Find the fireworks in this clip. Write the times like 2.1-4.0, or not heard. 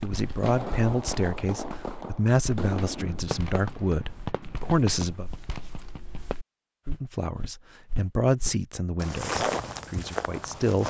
0.0-6.3.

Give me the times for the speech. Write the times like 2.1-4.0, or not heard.
0.0-5.3, 6.8-10.8.